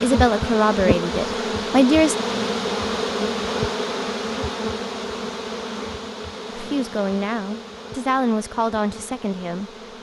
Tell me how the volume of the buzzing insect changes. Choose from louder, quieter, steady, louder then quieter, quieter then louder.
quieter.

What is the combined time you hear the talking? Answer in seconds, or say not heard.
5 s.